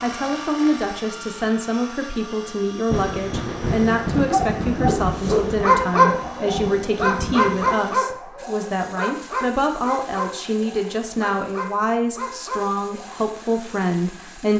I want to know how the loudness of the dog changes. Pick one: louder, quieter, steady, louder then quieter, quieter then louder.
quieter.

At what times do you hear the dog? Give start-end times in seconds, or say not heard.
4.2-13.3.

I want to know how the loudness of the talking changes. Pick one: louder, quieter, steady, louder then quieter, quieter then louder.
steady.